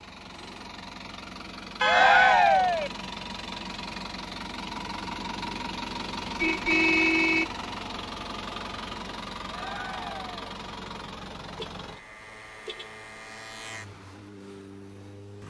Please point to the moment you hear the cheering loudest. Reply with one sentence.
The volume of the cheering peaks at 2 seconds.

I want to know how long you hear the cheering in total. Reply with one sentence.
The cheering can be heard for 2 seconds in total.